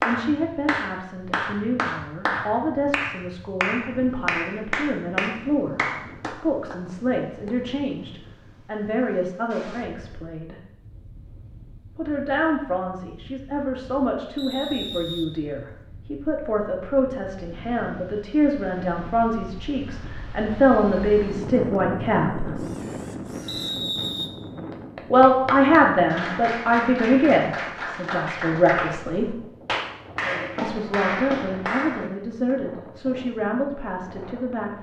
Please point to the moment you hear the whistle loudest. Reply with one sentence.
The loudest moment of the whistle is at 24 seconds.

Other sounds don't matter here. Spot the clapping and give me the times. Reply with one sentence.
The clapping can be heard from 0.0 to 6.8 s and from 24.7 to 32.1 s.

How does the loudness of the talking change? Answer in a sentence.
The volume of the talking goes up, then down.